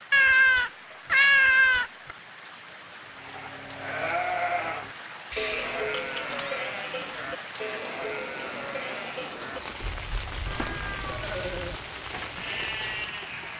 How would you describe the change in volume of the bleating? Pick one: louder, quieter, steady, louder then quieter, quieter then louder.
quieter then louder.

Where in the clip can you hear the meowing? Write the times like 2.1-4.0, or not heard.
0.1-2.1, 5.3-6.5, 10.4-11.2.